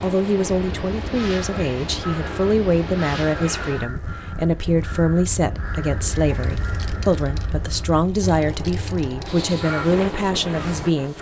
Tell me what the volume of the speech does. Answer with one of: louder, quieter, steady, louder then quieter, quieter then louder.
steady.